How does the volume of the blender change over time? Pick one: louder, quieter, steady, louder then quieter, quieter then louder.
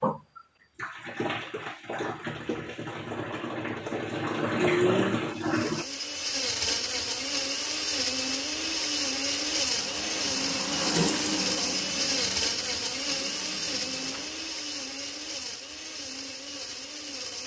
quieter.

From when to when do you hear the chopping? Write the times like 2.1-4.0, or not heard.
not heard.